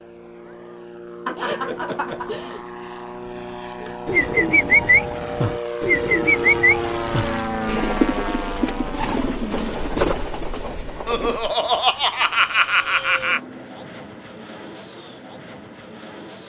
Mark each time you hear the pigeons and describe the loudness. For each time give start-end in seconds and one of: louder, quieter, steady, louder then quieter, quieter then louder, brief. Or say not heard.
4.0-11.4 quieter.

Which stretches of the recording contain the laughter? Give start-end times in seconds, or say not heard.
1.2-2.6, 11.1-13.4.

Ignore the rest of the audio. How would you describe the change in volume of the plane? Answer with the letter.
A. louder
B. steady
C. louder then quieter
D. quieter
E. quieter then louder
C.